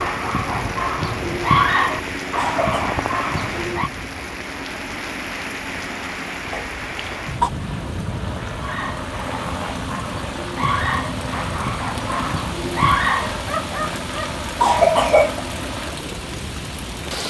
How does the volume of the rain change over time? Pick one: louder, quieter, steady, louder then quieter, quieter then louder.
steady.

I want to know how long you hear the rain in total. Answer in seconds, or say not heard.
17 s.